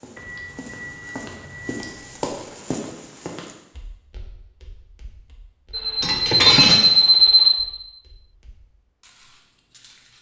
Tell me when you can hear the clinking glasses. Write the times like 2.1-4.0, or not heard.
1.8-2.4, 6.0-6.8.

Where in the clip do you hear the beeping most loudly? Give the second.
7 s.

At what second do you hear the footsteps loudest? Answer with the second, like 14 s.
2 s.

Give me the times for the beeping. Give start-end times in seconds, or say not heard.
0.1-1.9, 5.7-7.5.